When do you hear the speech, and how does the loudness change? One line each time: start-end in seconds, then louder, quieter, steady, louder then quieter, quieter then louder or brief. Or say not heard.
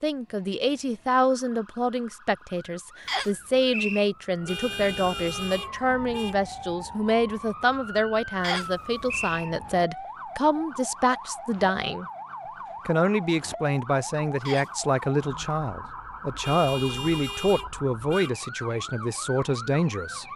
0.0-12.1 steady
12.8-20.2 steady.